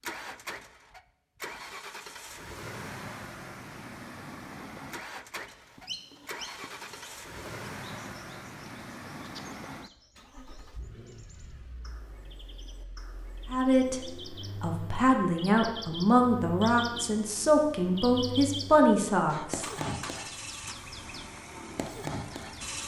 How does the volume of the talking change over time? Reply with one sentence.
The loudness of the talking goes up.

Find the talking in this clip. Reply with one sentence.
You can hear the talking from 13.5 to 19.7 s.